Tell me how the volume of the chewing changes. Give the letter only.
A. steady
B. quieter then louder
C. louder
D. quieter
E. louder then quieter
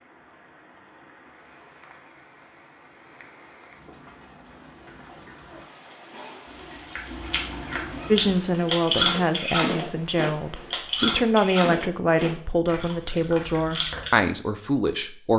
E.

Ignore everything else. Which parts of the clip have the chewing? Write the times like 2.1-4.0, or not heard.
6.5-14.2.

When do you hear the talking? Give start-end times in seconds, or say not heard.
8.1-15.3.